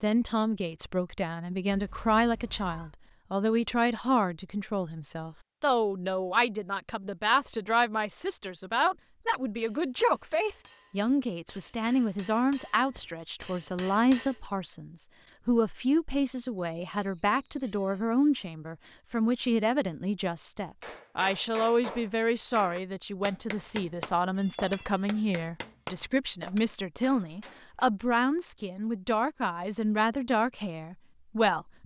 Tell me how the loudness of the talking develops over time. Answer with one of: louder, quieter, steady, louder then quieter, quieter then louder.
steady.